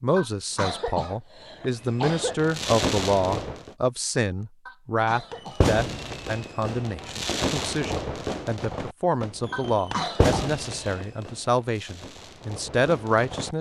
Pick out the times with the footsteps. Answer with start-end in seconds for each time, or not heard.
not heard.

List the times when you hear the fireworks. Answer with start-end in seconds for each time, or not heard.
1.7-3.8, 5.3-13.5.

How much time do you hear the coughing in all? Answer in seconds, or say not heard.
5 s.